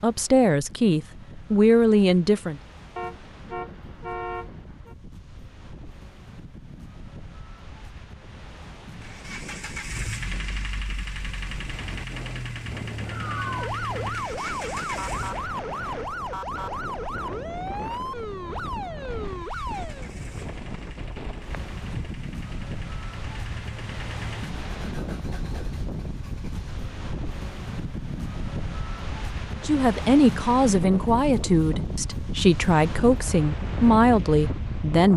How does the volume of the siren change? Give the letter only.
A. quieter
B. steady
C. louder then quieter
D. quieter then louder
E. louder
B.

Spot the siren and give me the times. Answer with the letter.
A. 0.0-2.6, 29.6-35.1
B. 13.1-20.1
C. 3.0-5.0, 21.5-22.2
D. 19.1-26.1
B.